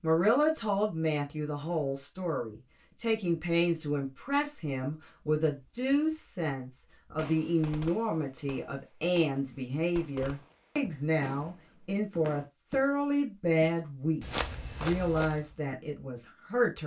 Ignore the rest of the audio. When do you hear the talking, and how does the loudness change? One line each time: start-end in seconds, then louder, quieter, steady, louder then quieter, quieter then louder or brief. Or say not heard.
0.0-16.8 steady.